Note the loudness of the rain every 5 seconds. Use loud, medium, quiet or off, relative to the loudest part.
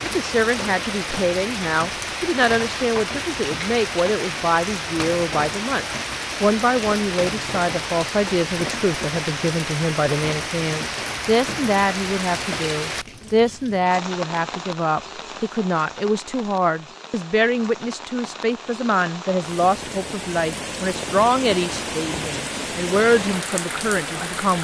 loud, loud, loud, medium, loud.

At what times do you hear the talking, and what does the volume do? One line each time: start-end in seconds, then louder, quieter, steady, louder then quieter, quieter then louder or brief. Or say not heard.
0.0-24.5 steady.